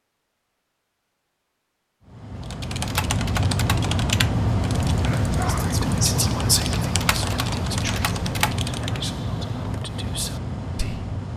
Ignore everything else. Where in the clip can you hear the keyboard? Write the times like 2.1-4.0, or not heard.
2.4-9.0.